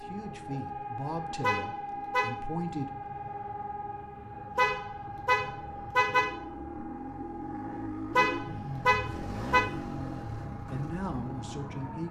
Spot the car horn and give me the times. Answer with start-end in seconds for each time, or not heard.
1.4-2.4, 4.5-6.4, 8.2-9.7.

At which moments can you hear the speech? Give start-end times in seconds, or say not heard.
0.0-3.0, 10.7-12.0.